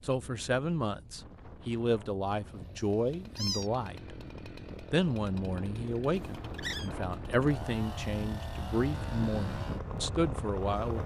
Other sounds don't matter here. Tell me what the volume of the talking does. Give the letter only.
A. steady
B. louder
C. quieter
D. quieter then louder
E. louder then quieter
A.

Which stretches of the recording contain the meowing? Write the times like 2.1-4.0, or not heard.
2.5-3.7, 6.2-6.9.